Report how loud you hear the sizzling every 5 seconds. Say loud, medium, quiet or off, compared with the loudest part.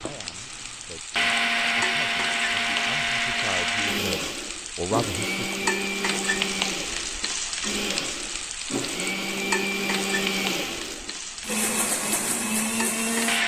medium, loud, loud.